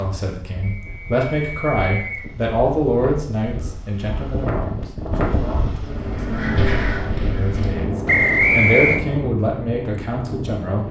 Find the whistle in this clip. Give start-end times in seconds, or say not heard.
0.6-2.3, 8.1-9.0.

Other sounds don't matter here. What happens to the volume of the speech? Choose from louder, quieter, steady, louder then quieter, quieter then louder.
quieter then louder.